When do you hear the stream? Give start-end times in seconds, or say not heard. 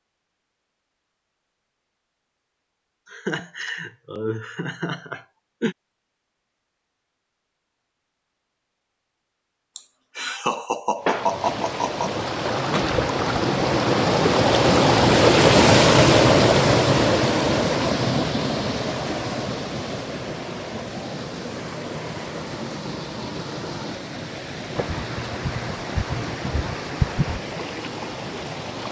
11.0-28.8.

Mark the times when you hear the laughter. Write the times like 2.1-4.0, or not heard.
3.1-5.8, 9.8-12.1, 24.8-27.4.